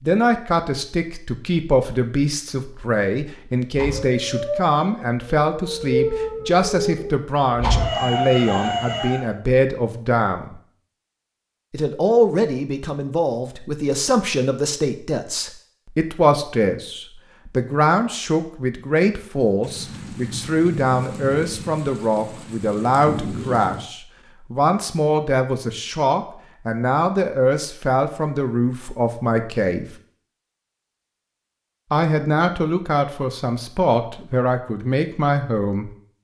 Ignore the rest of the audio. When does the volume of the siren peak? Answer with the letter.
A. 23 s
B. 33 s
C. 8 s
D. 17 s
C.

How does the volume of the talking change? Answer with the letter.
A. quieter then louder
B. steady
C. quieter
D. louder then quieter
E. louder
B.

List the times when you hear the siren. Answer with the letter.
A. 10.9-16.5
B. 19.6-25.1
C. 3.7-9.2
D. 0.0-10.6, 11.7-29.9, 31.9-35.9
C.